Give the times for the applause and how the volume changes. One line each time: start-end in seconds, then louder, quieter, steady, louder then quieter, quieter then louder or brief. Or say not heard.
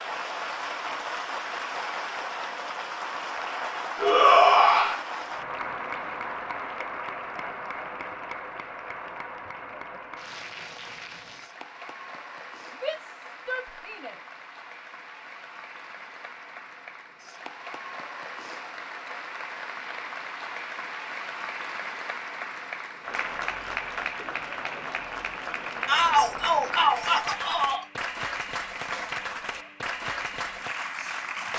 0.0-31.5 quieter then louder.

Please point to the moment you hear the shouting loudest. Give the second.
4 s.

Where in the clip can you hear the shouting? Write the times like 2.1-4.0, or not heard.
4.0-5.0, 12.7-14.2, 25.9-27.9.